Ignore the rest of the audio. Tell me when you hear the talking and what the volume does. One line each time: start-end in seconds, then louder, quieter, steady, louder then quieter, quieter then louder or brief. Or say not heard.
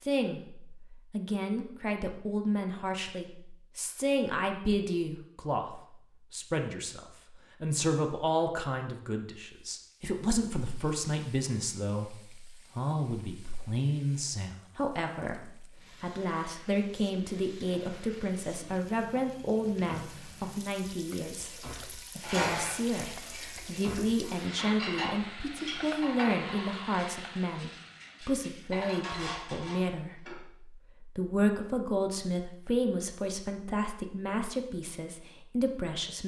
0.0-36.2 steady.